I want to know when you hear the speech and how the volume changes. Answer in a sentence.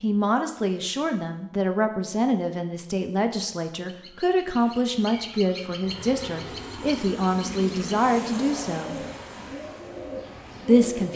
You can hear the speech from 0.0 to 9.0 s, at a steady volume; and briefly from 10.7 to 11.1 s.